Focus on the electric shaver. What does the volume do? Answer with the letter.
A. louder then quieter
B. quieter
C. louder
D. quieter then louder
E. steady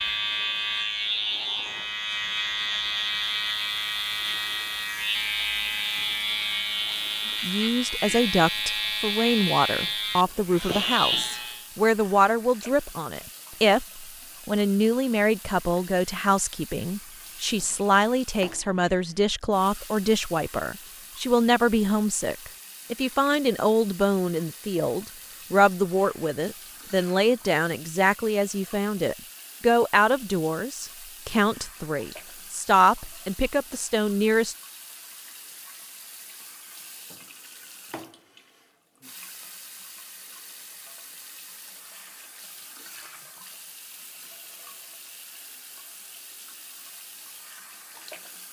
E.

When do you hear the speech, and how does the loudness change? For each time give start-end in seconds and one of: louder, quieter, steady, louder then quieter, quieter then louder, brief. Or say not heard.
7.4-34.5 steady.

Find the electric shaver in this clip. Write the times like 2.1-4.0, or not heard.
0.0-11.7.